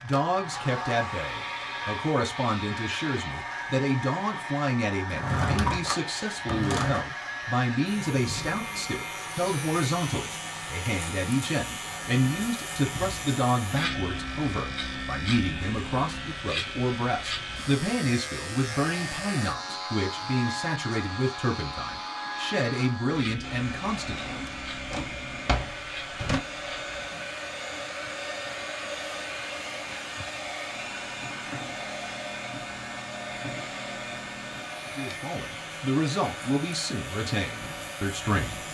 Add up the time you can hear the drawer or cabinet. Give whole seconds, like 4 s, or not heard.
4 s.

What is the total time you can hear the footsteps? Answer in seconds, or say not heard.
not heard.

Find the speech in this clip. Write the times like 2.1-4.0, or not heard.
0.0-24.4, 34.9-38.6.